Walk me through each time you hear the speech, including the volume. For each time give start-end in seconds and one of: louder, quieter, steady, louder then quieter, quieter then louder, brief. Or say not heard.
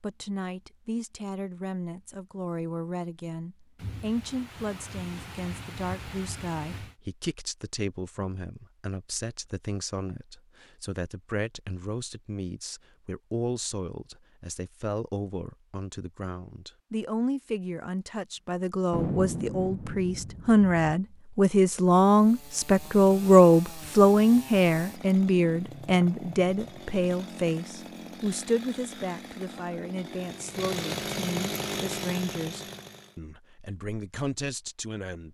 0.0-35.2 louder then quieter.